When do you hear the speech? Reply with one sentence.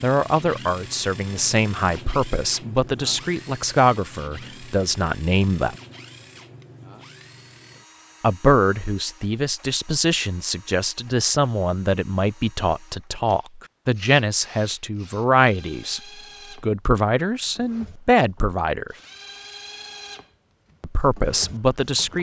You can hear the speech from 0.0 to 5.8 s, from 8.2 to 16.0 s, from 16.6 to 18.9 s and from 20.8 to 22.1 s.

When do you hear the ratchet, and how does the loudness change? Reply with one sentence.
The ratchet can't be heard in this clip.